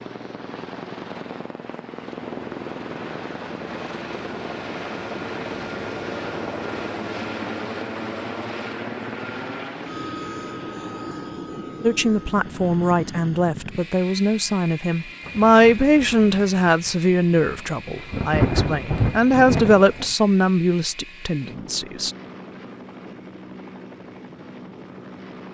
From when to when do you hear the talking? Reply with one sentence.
You can hear the talking from 11.8 to 22.1 s.